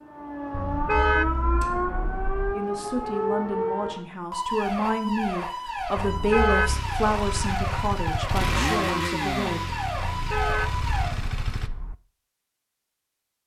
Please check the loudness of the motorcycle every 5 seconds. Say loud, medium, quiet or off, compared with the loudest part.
off, loud, medium.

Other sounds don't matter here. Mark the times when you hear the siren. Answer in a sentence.
You can hear the siren from 0.0 to 11.2 s.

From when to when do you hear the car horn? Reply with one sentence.
The car horn can be heard from 0.5 to 2.5 s, from 6.0 to 6.8 s and from 9.9 to 11.9 s.